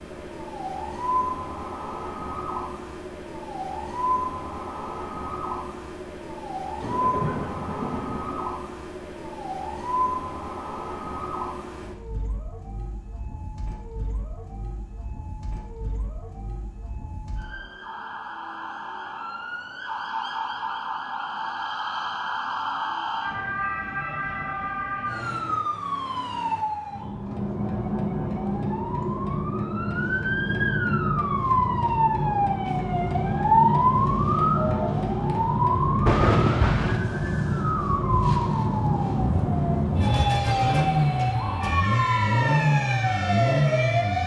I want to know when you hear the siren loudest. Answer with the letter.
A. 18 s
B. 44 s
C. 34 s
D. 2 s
C.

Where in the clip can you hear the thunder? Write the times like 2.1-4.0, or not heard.
6.8-8.4, 36.0-37.0.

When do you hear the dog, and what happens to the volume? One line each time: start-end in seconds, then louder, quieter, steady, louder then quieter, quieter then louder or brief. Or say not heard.
not heard.